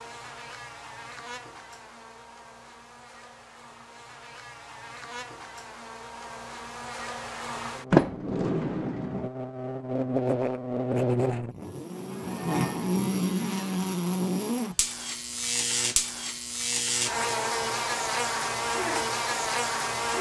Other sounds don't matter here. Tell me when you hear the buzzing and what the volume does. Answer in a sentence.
The buzzing can be heard from 0.0 to 20.1 s, getting louder.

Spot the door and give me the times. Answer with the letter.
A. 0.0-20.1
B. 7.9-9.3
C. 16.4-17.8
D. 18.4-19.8
B.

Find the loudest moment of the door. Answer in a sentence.
The volume of the door peaks at 8 seconds.